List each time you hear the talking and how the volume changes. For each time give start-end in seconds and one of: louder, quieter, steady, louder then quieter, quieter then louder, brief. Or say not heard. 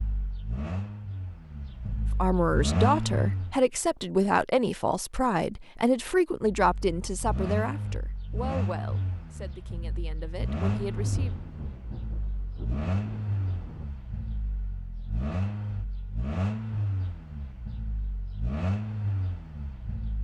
2.1-11.3 quieter.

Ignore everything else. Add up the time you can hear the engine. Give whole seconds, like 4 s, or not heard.
17 s.